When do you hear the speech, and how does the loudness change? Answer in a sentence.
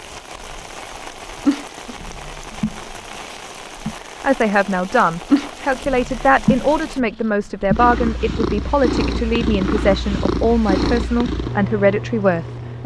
You can hear the speech from 4.2 to 12.8 s, at a steady volume.